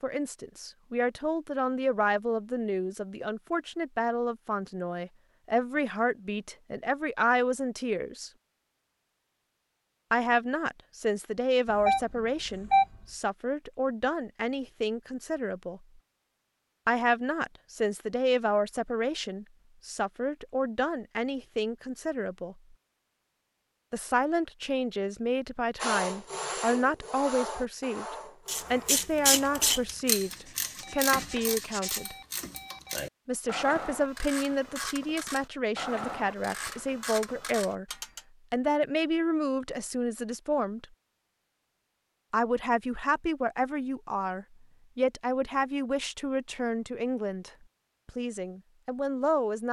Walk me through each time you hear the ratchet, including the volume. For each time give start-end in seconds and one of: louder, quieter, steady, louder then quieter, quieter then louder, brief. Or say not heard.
28.4-38.2 quieter.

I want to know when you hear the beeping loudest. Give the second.
13 s.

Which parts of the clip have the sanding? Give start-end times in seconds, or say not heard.
25.8-32.0.